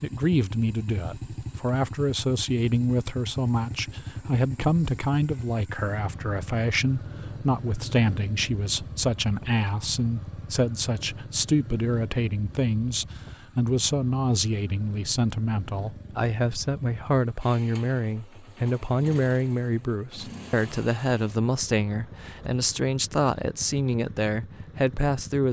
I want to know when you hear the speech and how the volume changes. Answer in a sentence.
The speech can be heard from 0.0 to 25.4 s, at a steady volume.